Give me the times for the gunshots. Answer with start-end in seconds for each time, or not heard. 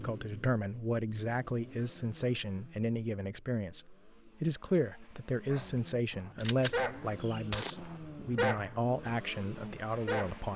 6.3-7.8.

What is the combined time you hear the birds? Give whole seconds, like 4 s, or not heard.
not heard.